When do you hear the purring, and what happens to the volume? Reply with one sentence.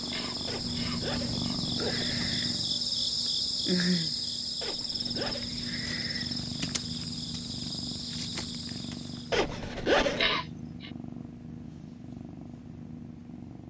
You can hear the purring from 0.0 to 13.6 s, getting quieter.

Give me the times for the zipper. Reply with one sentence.
You can hear the zipper from 0.5 to 2.4 s, from 4.6 to 5.5 s and from 9.3 to 10.3 s.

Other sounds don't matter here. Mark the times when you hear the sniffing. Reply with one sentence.
The sniffing can be heard from 0.1 to 1.6 s and from 10.2 to 10.9 s.